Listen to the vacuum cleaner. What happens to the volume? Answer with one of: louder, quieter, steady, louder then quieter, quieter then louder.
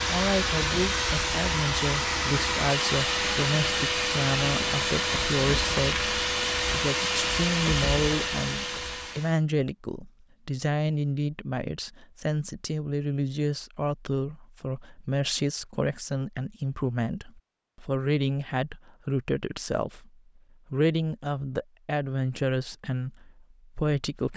steady.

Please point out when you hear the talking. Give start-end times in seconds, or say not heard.
0.1-24.3.